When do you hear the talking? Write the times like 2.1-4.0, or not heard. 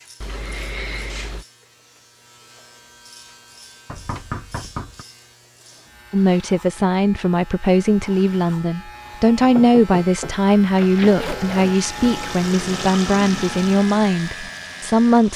6.1-15.3.